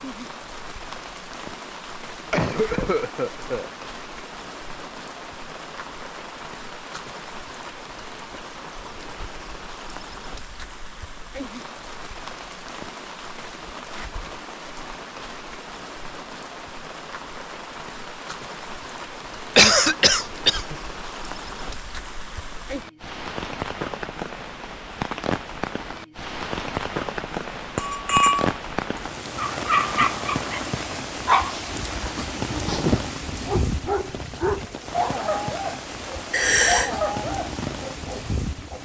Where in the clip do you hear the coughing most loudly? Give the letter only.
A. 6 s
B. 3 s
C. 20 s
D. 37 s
C.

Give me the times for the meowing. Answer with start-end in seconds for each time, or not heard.
not heard.